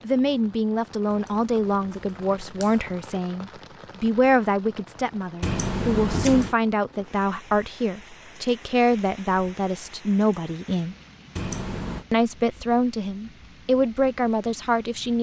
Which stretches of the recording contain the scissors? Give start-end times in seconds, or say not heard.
1.1-3.0, 5.4-6.5, 11.3-12.1.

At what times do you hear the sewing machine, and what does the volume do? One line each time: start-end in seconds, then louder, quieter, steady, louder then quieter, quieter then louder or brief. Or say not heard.
not heard.